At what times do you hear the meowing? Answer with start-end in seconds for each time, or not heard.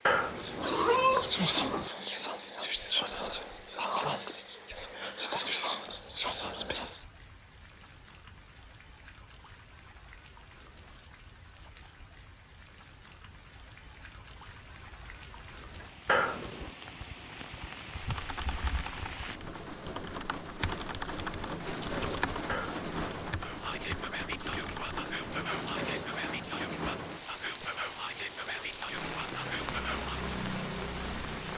0.1-1.9, 16.1-16.7, 22.4-22.9.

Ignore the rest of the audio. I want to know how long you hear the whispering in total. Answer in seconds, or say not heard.
14 s.